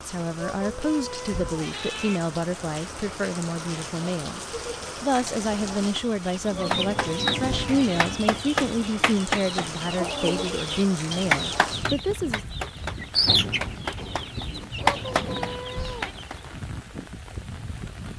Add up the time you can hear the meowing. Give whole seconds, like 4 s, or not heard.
5 s.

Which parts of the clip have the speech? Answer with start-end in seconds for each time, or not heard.
0.0-12.4.